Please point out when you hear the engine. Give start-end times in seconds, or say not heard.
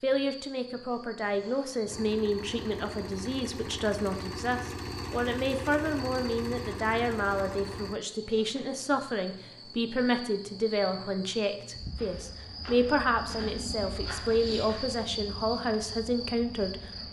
1.9-8.0.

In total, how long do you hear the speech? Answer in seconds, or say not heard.
17 s.